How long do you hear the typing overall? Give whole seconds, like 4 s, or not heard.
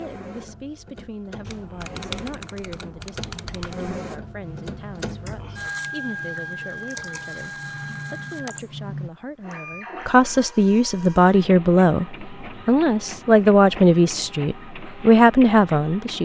8 s.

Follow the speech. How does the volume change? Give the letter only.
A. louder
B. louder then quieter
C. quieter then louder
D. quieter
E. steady
A.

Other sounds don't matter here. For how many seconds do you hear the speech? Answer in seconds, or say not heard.
16 s.